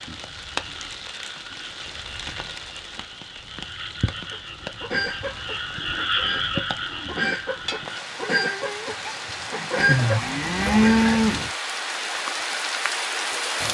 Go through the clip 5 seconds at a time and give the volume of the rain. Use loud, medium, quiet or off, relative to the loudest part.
medium, medium, loud.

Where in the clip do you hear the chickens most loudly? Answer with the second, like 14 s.
10 s.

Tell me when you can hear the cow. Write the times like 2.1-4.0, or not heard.
10.1-11.5.